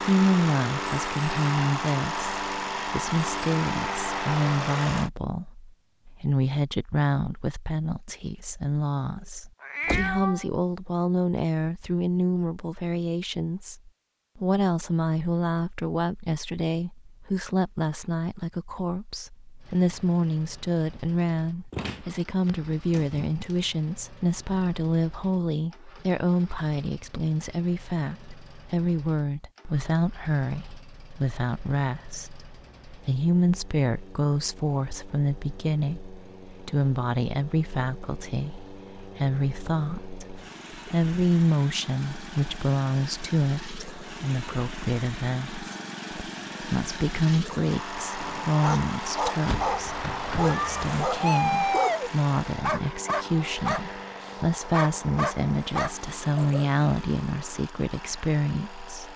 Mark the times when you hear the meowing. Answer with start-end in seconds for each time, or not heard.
9.6-10.4, 50.5-52.1.